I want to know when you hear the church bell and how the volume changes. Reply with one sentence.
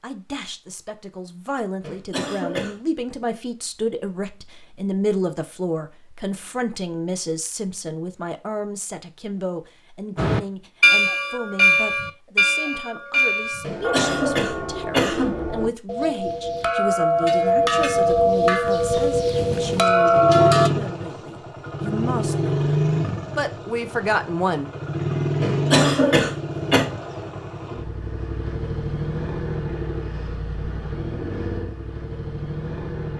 You can hear the church bell from 10.2 to 20.7 s, getting quieter then louder.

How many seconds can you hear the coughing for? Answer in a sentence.
You can hear the coughing for 4 seconds altogether.